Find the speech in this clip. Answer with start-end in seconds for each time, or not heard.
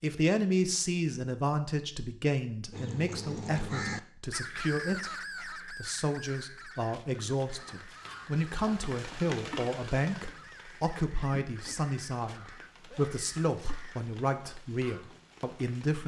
0.0-16.0.